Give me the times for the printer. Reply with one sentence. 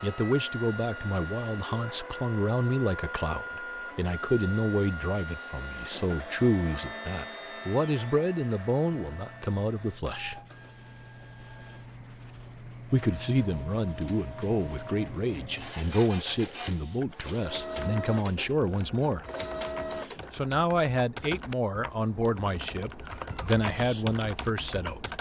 You can hear the printer from 0.0 to 20.5 s.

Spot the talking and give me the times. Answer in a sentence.
The talking can be heard from 0.0 to 10.3 s, from 12.9 to 19.2 s and from 20.3 to 25.1 s.